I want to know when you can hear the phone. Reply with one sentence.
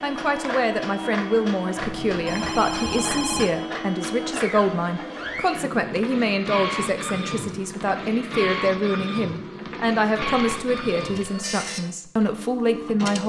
The phone can be heard from 1.8 to 3.5 s and from 10.2 to 11.7 s.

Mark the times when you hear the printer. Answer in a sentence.
The printer can be heard from 0.0 to 13.2 s.